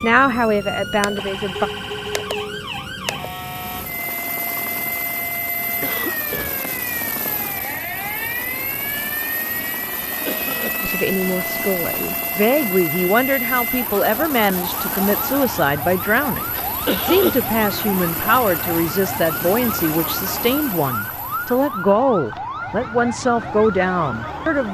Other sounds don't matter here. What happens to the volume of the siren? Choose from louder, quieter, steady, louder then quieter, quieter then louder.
steady.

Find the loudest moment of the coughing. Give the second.
17 s.